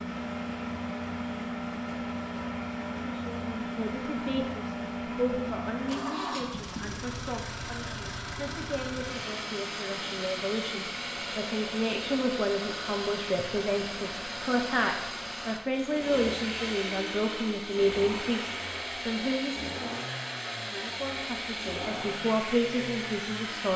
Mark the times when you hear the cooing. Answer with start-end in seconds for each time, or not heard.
not heard.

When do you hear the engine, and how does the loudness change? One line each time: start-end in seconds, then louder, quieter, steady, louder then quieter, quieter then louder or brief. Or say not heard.
0.0-23.7 steady.